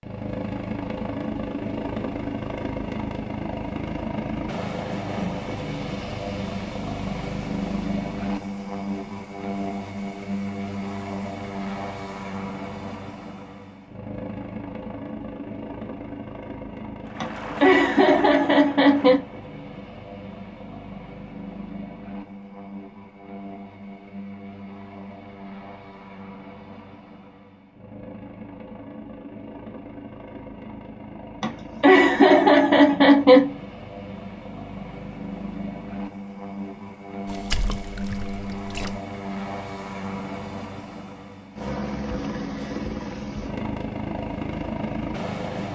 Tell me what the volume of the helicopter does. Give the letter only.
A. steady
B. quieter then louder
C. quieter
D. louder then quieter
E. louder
B.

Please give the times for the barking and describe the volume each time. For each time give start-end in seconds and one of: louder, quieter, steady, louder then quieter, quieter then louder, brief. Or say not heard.
not heard.